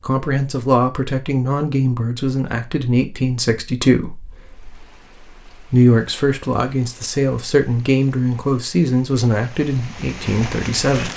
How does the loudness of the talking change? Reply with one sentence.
The volume of the talking stays about the same.